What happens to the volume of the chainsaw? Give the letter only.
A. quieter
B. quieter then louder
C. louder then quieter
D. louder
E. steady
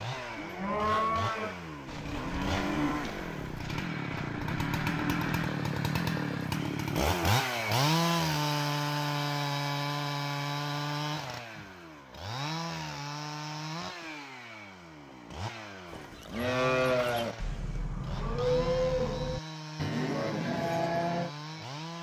C.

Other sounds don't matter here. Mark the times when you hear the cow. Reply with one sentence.
You can hear the cow from 0.1 to 5.3 s and from 15.9 to 21.3 s.